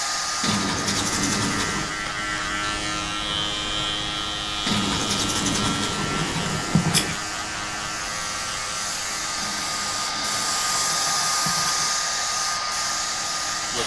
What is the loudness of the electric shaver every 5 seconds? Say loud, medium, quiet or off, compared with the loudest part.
loud, loud, medium.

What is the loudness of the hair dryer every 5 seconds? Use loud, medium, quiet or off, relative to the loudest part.
medium, medium, loud.